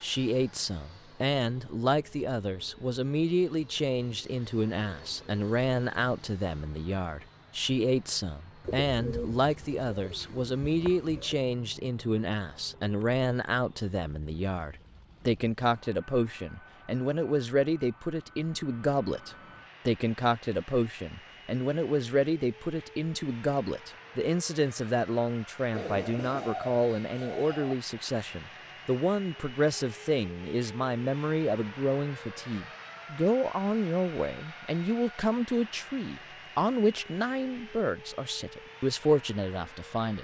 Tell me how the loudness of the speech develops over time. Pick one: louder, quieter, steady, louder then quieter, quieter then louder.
steady.